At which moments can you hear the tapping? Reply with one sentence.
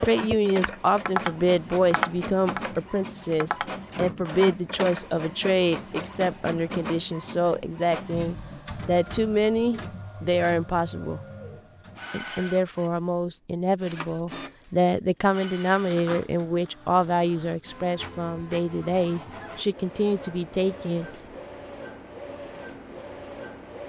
You can hear the tapping from 0.0 to 4.3 s.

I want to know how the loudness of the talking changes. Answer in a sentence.
The volume of the talking stays about the same.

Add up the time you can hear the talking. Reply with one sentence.
You can hear the talking for 20 seconds altogether.